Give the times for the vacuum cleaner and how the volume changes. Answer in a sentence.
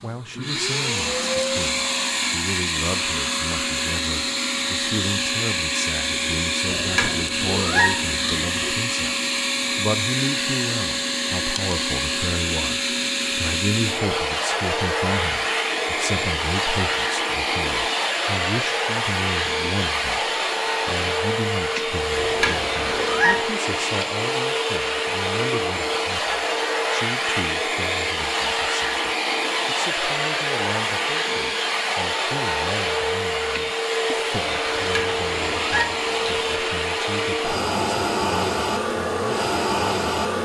You can hear the vacuum cleaner from 0.0 to 40.4 s, at a steady volume.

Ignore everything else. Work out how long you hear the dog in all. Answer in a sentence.
You can't hear the dog here.